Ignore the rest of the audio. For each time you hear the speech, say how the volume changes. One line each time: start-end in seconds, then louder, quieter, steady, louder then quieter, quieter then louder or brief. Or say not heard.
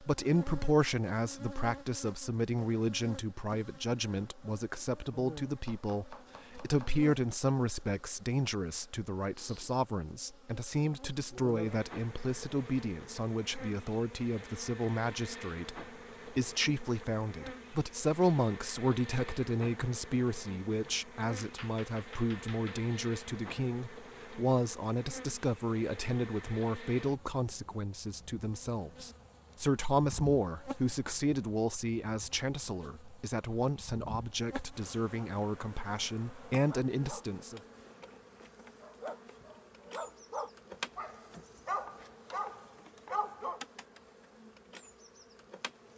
0.0-37.6 steady.